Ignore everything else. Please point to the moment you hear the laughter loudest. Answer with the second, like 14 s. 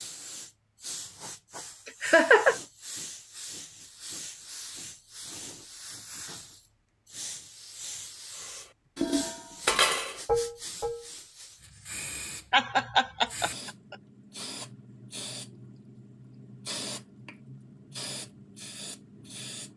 2 s.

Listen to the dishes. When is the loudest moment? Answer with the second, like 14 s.
10 s.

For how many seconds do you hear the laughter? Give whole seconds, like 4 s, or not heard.
2 s.